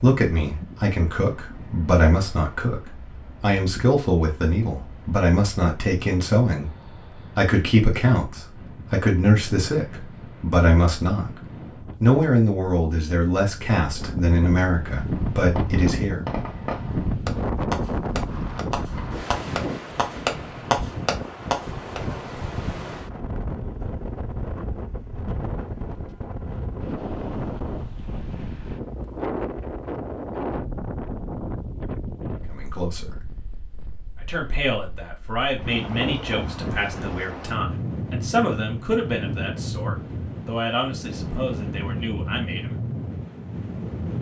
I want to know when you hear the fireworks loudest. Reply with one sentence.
The loudest moment of the fireworks is at 21 seconds.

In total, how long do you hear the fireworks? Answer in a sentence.
The fireworks can be heard for 7 seconds in total.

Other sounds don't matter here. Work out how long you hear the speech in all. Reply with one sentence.
The speech can be heard for 24 seconds in total.